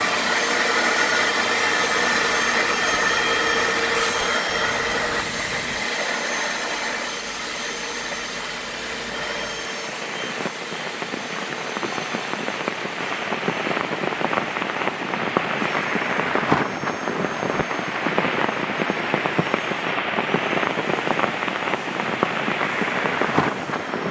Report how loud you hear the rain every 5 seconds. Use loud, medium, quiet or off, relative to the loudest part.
quiet, quiet, loud, loud, loud.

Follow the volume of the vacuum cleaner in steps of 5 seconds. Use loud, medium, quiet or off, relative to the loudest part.
loud, medium, quiet, quiet, quiet.